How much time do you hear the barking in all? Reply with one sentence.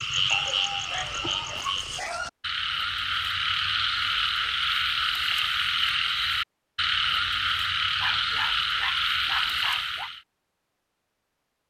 The barking can be heard for 4 seconds in total.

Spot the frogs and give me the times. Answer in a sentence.
The frogs can be heard from 0.0 to 10.2 s.